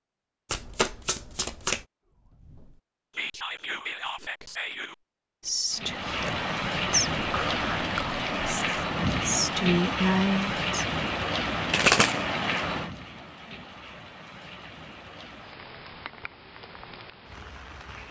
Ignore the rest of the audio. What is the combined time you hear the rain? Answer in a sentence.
The rain can be heard for 12 seconds in total.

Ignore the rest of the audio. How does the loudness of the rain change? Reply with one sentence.
The loudness of the rain goes down.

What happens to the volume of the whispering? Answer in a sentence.
The volume of the whispering goes up.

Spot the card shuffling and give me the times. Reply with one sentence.
You can hear the card shuffling from 0.5 to 1.8 s and from 11.7 to 12.6 s.